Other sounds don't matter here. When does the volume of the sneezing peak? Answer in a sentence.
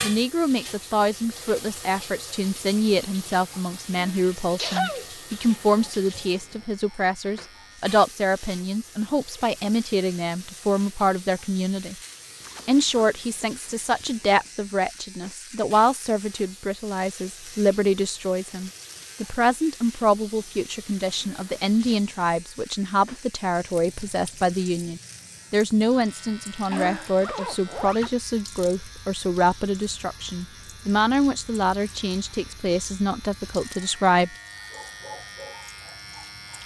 The volume of the sneezing peaks at 5 seconds.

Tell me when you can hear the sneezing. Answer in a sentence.
The sneezing can be heard from 4.0 to 5.1 s, from 21.2 to 22.0 s and from 26.7 to 27.4 s.